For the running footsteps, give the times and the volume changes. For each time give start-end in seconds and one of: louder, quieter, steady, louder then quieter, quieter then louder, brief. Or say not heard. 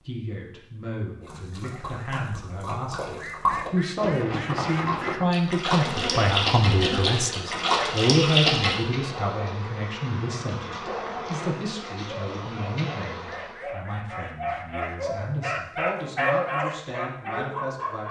not heard.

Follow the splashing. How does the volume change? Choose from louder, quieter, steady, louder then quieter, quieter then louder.
louder.